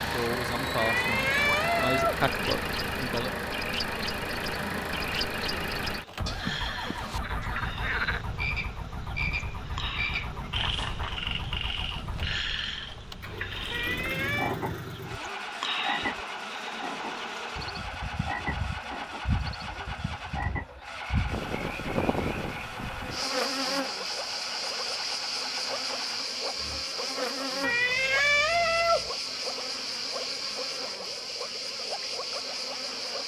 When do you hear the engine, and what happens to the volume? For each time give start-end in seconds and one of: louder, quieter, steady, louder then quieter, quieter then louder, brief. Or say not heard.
0.0-26.9 quieter.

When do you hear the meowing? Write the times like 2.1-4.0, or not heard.
0.8-2.2, 13.7-14.6, 27.6-29.1.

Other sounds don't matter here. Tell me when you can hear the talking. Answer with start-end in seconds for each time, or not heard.
0.0-3.5.